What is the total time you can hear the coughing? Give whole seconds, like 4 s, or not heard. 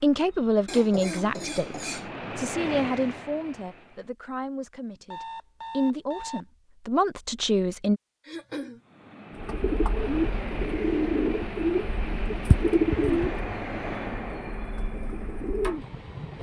2 s.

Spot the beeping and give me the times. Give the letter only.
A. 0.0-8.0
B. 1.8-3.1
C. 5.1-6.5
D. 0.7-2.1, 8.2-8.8
C.